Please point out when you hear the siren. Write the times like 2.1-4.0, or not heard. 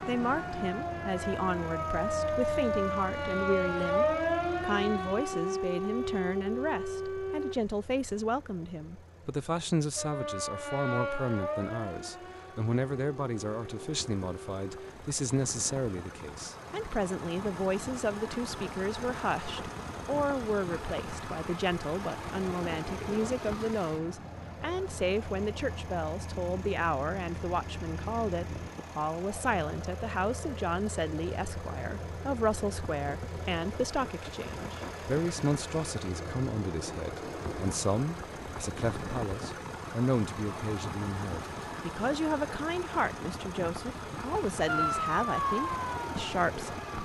0.0-7.5, 9.9-14.9, 44.6-47.0.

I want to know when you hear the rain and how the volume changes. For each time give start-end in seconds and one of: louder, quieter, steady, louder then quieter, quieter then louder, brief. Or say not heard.
not heard.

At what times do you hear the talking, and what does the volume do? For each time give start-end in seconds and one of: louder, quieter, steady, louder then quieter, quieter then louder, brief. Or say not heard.
0.1-47.0 steady.